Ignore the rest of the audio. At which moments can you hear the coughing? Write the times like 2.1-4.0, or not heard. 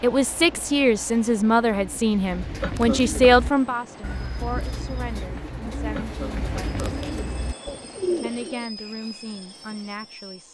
2.6-3.0, 6.0-7.0.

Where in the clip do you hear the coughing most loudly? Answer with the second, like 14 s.
3 s.